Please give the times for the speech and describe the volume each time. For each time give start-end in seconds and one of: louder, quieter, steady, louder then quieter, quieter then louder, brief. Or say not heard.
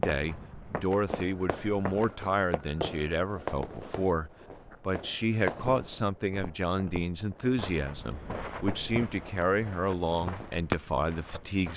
0.0-11.7 steady.